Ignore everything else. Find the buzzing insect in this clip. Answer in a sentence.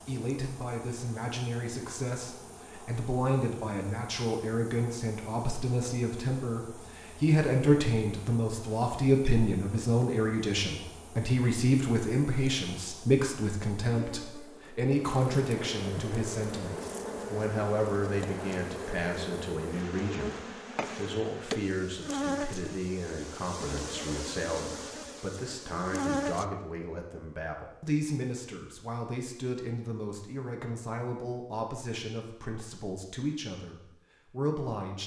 The buzzing insect can be heard from 0.0 to 26.4 s.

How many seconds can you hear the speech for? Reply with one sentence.
You can hear the speech for 35 seconds altogether.